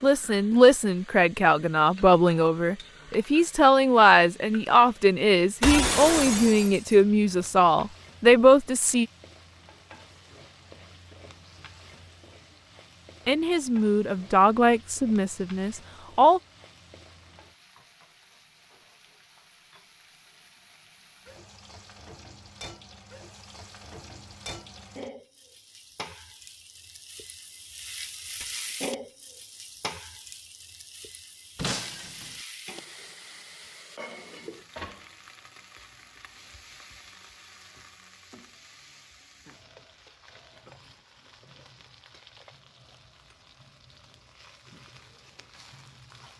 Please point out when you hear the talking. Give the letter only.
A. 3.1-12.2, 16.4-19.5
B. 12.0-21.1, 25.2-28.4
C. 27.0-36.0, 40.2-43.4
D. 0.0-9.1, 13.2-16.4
D.